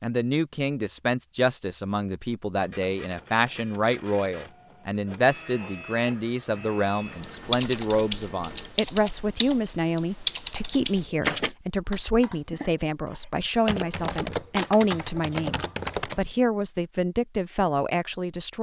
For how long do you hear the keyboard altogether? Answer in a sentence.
The keyboard can be heard for 9 seconds in total.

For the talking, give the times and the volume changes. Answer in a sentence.
You can hear the talking from 0.0 to 18.5 s, at a steady volume.